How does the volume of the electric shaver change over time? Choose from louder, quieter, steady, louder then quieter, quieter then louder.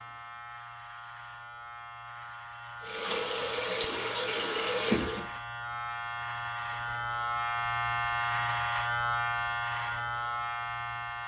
louder.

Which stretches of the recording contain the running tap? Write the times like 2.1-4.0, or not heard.
2.8-5.4.